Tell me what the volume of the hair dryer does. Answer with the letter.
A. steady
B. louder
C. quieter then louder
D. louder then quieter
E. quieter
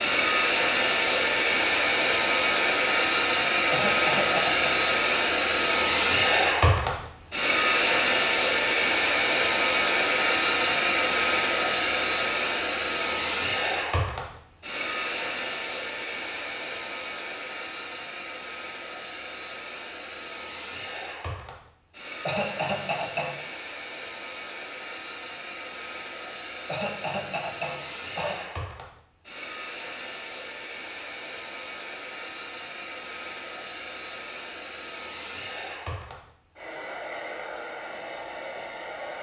E.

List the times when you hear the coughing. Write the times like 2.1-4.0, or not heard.
3.7-4.8, 22.2-23.6, 26.6-28.4.